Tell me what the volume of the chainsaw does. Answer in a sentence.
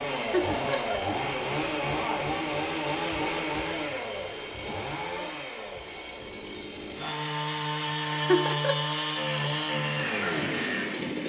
The volume of the chainsaw goes down, then up.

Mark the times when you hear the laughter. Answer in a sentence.
You can hear the laughter from 0.1 to 0.9 s and from 8.1 to 8.8 s.